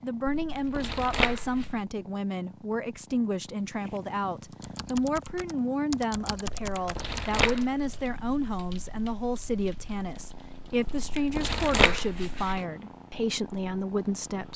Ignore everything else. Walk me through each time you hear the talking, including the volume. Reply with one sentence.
You can hear the talking from 0.0 to 14.5 s, at a steady volume.